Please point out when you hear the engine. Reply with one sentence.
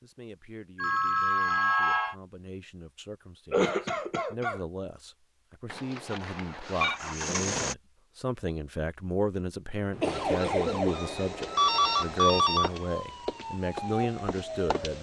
The engine can be heard from 6.0 to 7.8 s.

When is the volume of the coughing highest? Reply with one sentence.
The loudest moment of the coughing is at 4 seconds.